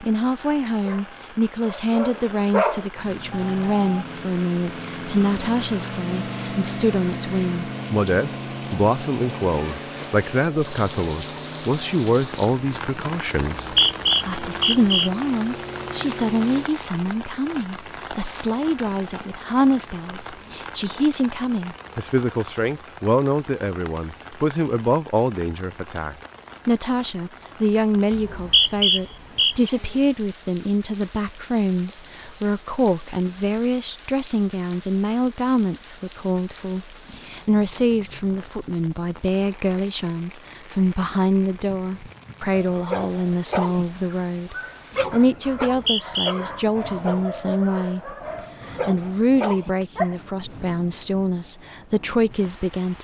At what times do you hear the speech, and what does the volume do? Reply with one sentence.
The speech can be heard from 0.0 to 52.9 s, at a steady volume.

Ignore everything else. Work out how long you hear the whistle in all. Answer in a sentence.
You can hear the whistle for 4 seconds altogether.